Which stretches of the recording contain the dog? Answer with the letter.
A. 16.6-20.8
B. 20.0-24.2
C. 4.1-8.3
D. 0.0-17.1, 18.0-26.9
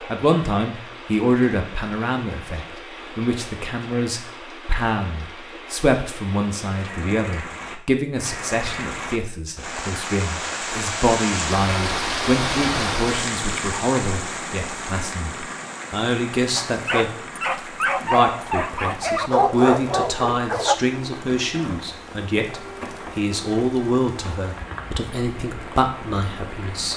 A.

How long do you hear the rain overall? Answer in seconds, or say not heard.
27 s.